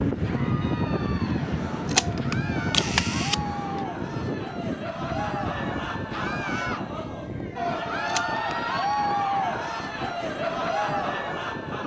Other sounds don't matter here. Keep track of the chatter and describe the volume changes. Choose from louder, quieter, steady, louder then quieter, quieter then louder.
louder.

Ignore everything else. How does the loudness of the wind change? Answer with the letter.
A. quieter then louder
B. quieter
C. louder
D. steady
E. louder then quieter
B.